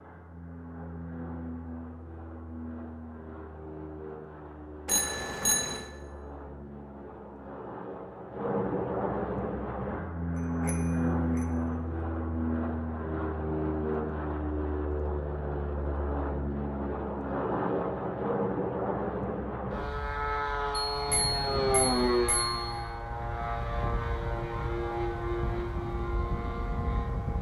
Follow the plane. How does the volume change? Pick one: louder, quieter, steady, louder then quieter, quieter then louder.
louder.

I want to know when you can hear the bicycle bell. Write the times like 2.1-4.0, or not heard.
4.8-5.8, 10.7-11.4, 20.9-22.8.